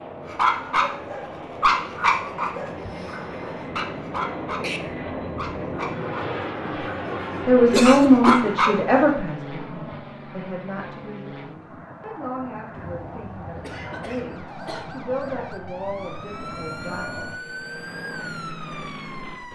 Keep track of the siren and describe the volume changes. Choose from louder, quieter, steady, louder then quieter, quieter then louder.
louder.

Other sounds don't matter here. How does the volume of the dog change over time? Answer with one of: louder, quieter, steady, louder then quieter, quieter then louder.
quieter then louder.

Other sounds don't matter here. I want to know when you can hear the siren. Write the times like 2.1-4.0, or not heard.
12.8-19.5.